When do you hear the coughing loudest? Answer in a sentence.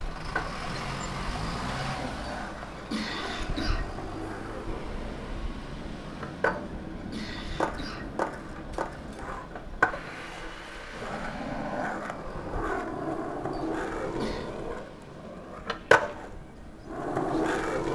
The loudest moment of the coughing is at 3 seconds.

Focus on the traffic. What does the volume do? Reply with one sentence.
The loudness of the traffic goes down.